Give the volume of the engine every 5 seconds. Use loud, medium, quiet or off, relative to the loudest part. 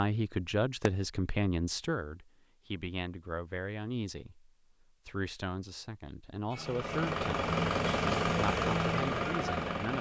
off, loud.